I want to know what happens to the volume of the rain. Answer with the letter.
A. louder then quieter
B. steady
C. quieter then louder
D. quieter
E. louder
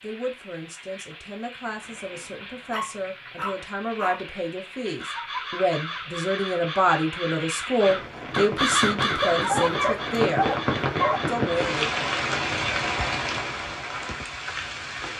E.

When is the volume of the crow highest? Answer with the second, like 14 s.
9 s.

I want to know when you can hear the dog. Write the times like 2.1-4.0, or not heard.
2.7-4.2, 9.3-11.2.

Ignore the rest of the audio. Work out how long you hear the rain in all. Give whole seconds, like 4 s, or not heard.
15 s.